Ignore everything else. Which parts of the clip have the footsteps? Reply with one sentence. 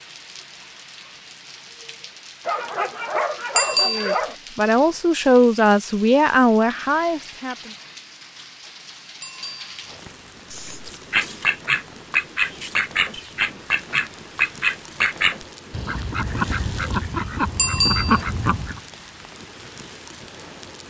You can't hear the footsteps here.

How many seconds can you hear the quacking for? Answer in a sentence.
You can hear the quacking for 8 seconds altogether.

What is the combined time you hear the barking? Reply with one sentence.
You can hear the barking for 2 seconds altogether.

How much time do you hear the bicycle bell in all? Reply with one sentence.
You can hear the bicycle bell for 2 seconds altogether.